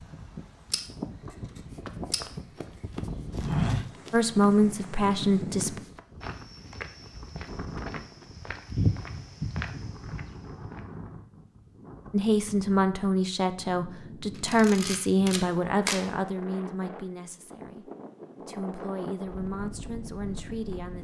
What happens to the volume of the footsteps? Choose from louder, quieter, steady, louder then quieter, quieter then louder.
quieter then louder.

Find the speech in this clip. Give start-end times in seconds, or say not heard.
4.1-5.8, 12.1-20.9.